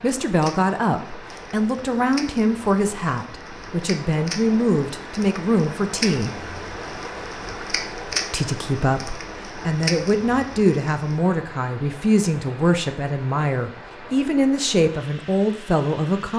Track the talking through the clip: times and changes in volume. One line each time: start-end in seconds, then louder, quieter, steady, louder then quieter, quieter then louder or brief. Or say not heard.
0.0-6.4 steady
8.3-16.3 steady.